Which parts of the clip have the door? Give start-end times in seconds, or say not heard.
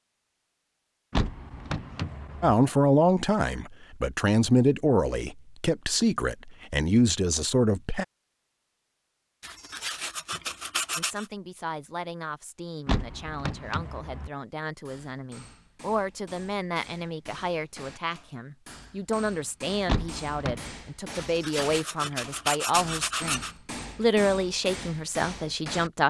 1.1-2.5, 12.8-14.3, 19.9-20.7.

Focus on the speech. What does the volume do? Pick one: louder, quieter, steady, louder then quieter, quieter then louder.
quieter then louder.